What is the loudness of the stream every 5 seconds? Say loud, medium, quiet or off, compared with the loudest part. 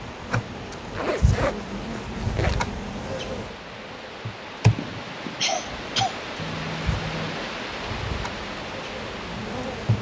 medium, loud.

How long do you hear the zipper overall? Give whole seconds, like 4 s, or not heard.
3 s.